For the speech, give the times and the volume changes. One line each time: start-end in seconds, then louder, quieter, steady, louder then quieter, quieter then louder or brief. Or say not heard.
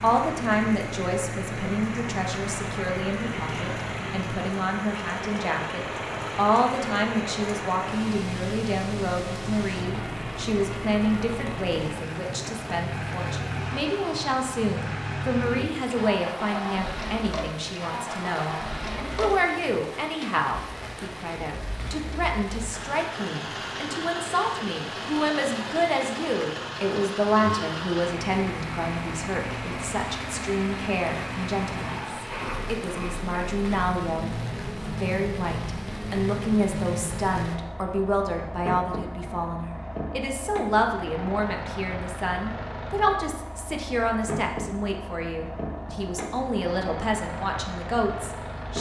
0.0-48.7 steady.